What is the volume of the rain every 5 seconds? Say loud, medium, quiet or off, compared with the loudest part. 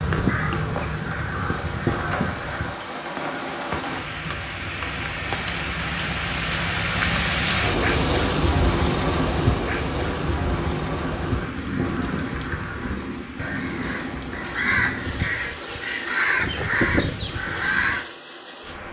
medium, loud, medium, quiet.